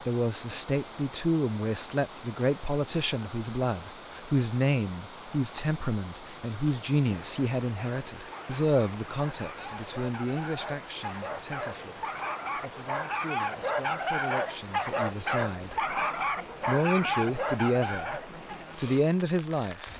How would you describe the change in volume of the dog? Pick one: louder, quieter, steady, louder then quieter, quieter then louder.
louder.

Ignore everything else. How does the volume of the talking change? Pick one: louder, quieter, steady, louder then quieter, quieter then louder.
quieter then louder.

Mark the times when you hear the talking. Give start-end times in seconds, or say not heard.
0.1-15.8, 16.6-19.9.